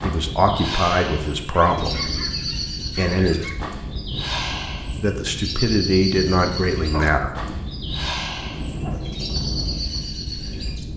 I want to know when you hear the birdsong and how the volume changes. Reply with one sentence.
The birdsong can be heard from 0.0 to 10.8 s, at a steady volume.